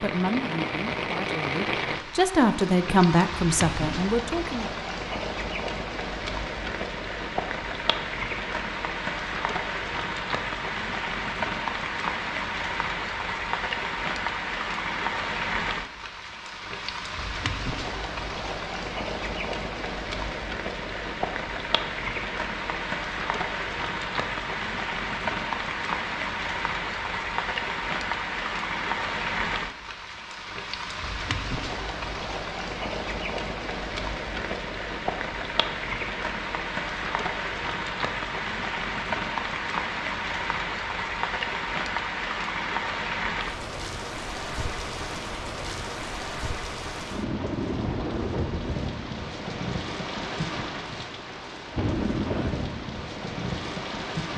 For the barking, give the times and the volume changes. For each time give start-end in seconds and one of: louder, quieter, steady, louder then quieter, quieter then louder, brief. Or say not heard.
not heard.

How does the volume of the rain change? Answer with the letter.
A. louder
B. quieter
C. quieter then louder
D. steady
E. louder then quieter
D.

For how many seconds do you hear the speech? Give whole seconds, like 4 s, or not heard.
5 s.